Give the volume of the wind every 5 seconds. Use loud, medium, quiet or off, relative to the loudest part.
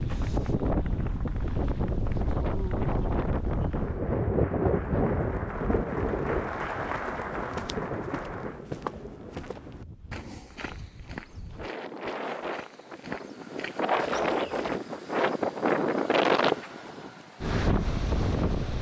loud, medium, medium, loud.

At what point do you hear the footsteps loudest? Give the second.
9 s.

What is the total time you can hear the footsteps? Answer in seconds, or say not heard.
8 s.